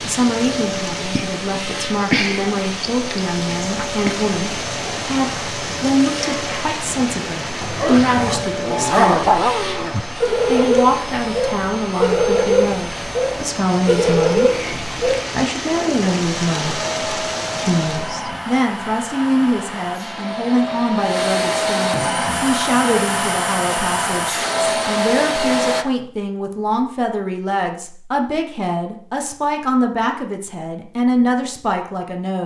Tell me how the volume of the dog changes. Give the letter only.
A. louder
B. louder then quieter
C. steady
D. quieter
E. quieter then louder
C.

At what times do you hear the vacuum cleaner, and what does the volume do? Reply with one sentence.
The vacuum cleaner can be heard from 0.0 to 25.9 s, getting louder.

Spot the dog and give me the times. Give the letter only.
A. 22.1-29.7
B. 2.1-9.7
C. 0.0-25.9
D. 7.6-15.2
D.